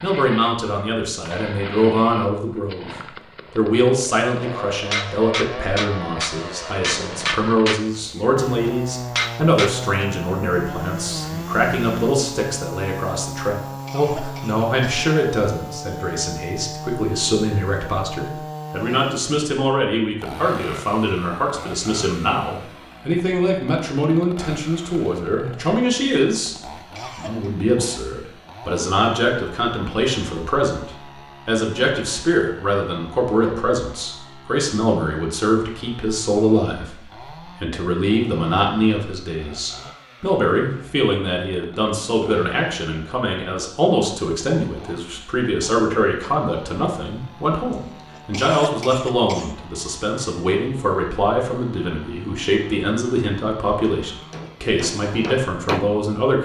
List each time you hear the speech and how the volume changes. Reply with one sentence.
You can hear the speech briefly from 0.0 to 2.9 s; from 3.5 to 26.6 s, at a steady volume; and from 27.1 to 56.3 s, at a steady volume.